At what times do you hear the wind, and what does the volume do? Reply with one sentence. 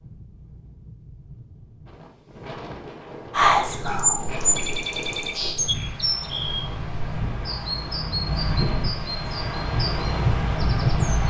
You can hear the wind from 0.0 to 11.2 s, getting louder.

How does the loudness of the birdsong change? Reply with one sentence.
The loudness of the birdsong goes down.